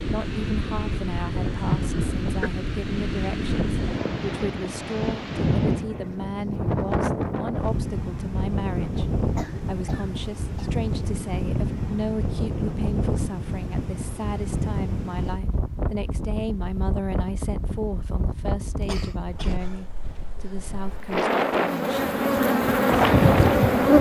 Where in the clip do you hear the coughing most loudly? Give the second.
2 s.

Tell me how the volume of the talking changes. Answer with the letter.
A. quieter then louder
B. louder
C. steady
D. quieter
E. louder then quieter
C.